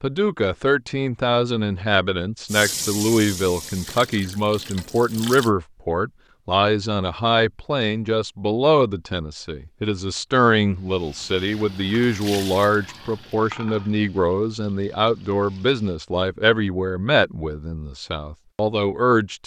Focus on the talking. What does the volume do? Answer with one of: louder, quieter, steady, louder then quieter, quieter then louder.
steady.